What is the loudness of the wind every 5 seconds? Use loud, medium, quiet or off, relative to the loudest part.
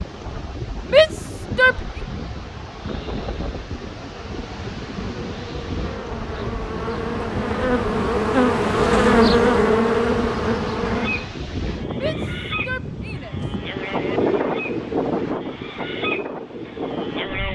medium, medium, loud, loud.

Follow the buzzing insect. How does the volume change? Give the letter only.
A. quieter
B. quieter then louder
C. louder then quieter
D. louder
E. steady
D.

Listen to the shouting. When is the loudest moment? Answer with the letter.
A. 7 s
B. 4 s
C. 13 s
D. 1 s
D.